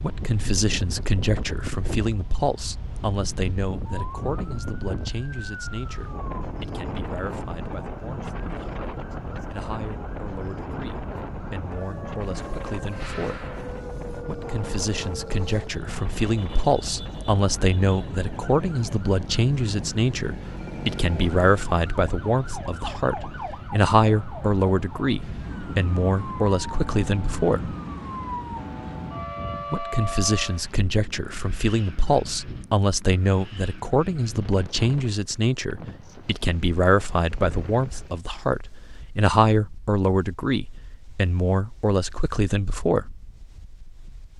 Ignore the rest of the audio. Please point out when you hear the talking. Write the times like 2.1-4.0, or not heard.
0.0-13.5, 14.2-27.8, 29.7-43.2.